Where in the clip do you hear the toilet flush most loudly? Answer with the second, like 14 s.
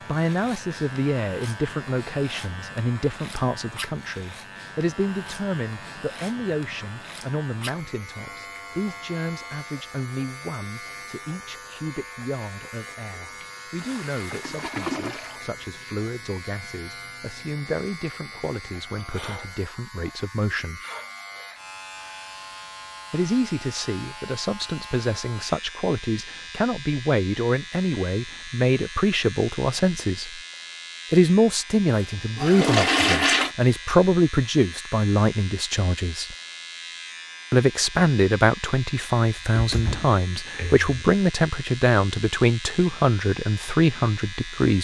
33 s.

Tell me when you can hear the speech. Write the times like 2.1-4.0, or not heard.
0.1-20.8, 23.1-30.4, 31.1-36.4, 37.5-44.7.